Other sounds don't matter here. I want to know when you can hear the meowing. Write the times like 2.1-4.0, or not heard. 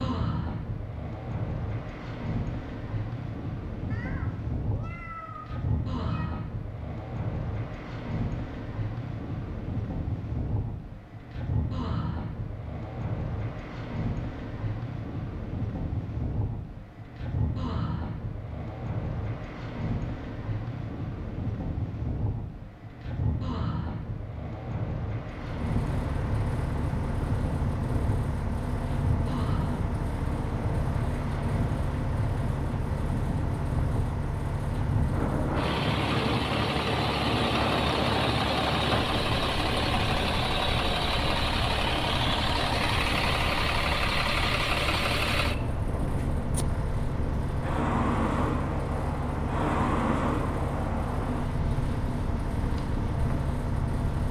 3.9-6.3.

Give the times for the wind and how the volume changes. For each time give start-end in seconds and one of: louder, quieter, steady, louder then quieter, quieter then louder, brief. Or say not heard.
0.0-54.2 steady.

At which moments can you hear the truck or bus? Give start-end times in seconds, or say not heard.
25.4-54.2.